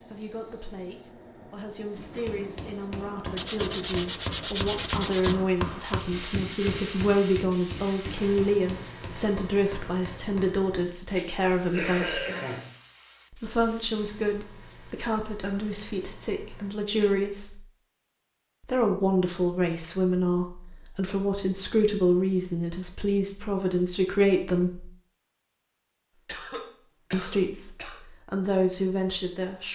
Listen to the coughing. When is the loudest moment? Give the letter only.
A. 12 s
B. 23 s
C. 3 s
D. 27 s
A.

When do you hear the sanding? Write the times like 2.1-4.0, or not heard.
3.4-5.4.